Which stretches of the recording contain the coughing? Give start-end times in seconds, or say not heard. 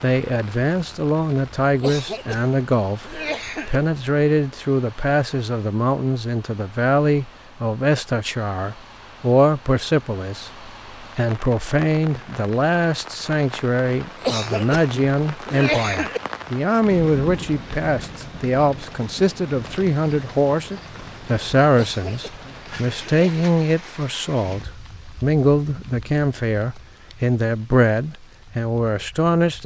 1.8-3.8, 14.2-16.2, 21.8-23.4.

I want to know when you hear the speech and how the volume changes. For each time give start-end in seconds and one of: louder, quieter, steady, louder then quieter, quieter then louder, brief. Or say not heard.
0.0-29.6 steady.